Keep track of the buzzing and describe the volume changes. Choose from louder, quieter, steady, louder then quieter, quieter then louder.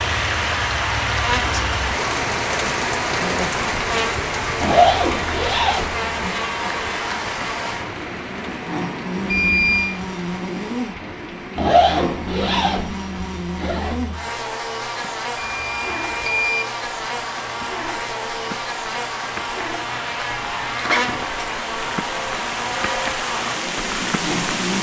steady.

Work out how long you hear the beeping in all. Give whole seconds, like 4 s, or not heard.
2 s.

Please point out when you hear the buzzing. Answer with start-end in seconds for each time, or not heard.
0.0-24.7.